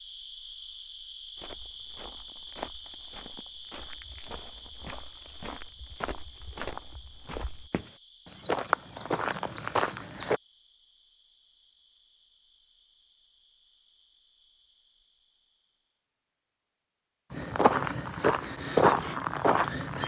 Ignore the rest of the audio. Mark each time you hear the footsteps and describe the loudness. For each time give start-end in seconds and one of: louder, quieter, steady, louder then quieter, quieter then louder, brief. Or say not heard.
1.4-10.4 louder
17.3-20.0 brief.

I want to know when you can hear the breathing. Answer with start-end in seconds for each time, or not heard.
not heard.